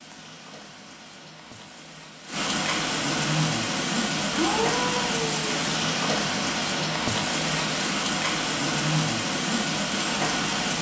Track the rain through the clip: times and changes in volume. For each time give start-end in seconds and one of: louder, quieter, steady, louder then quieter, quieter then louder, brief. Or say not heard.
0.0-10.7 louder.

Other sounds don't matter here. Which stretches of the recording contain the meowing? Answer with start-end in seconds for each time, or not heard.
4.2-5.4.